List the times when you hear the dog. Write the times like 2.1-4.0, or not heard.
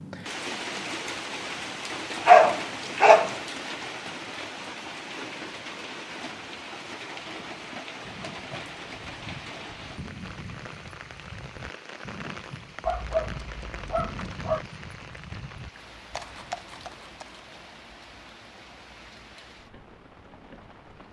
2.2-3.3, 12.8-14.6.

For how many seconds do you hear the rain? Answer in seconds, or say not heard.
21 s.